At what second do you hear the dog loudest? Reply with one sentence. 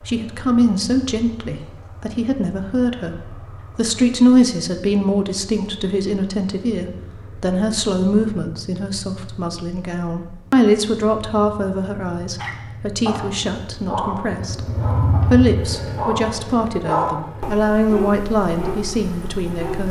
The loudest moment of the dog is at 17 seconds.